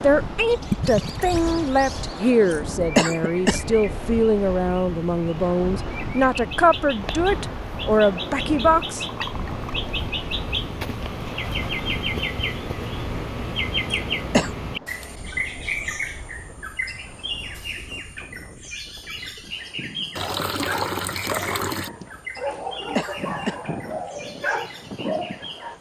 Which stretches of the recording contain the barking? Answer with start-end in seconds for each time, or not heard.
20.1-25.7.